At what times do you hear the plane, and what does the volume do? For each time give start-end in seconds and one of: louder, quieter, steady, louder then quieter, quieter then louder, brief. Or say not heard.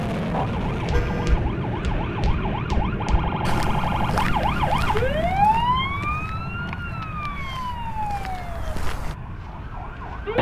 0.0-10.3 quieter.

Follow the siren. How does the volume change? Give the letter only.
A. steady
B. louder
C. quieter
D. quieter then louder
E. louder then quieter
E.